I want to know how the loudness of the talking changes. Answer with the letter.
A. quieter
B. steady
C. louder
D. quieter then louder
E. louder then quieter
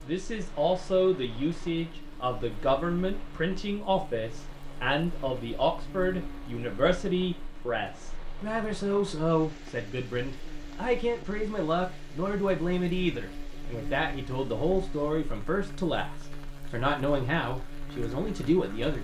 B.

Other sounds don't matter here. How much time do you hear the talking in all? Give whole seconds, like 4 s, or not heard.
19 s.